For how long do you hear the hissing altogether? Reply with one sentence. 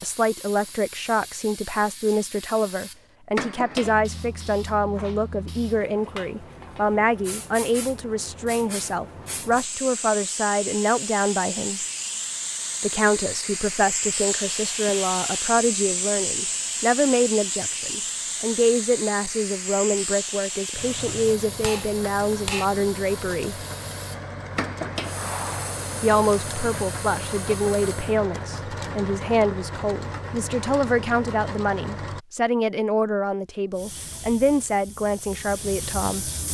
The hissing can be heard for 31 seconds in total.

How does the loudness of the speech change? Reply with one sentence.
The volume of the speech stays about the same.